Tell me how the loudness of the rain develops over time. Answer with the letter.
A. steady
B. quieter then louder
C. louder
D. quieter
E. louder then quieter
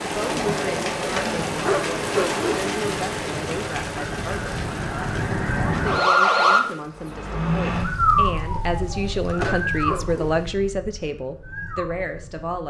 B.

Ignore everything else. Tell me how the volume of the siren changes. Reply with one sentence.
The loudness of the siren goes up, then down.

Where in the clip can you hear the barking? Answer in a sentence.
You can hear the barking from 1.6 to 2.6 s and from 9.3 to 10.3 s.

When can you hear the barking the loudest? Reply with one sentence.
The volume of the barking peaks at 2 seconds.